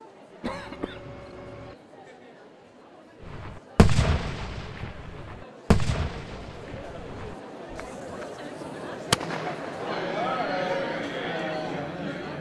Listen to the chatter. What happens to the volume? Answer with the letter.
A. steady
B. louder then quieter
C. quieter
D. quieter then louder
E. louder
E.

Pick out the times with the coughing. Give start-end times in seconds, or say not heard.
0.4-1.8.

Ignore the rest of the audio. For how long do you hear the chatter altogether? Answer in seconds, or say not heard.
12 s.